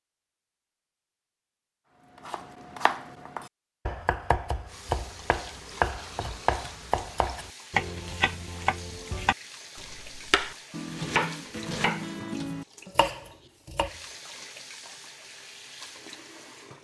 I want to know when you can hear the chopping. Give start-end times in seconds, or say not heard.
2.1-13.9.